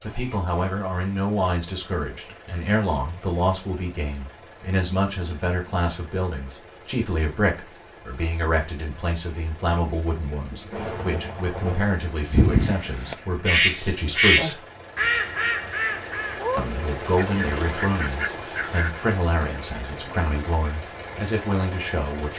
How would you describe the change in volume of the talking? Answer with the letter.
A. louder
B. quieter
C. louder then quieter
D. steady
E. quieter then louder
D.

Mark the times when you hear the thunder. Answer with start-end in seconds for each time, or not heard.
10.5-11.8.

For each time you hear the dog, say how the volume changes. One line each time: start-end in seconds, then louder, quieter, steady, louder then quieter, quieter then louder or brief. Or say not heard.
not heard.